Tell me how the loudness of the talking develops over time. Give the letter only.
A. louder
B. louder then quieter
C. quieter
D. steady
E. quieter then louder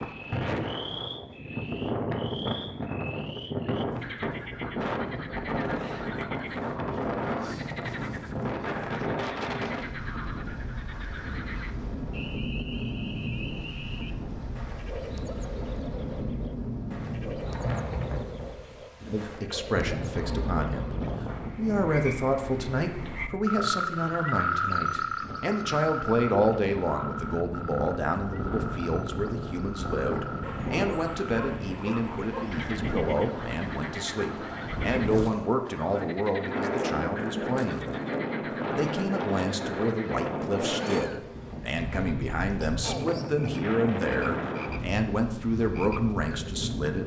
D.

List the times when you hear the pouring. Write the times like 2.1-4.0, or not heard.
20.1-21.2.